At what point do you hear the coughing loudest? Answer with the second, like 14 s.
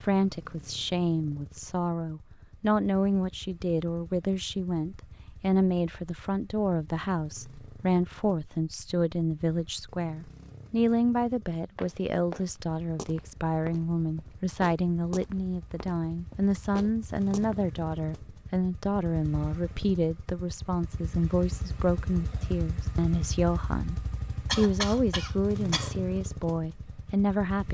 25 s.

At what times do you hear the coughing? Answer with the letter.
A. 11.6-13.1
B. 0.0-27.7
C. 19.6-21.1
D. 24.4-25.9
D.